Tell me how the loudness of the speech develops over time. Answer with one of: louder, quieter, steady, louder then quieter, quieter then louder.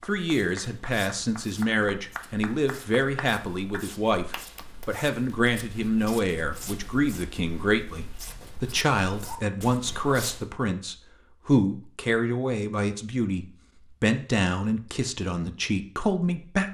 steady.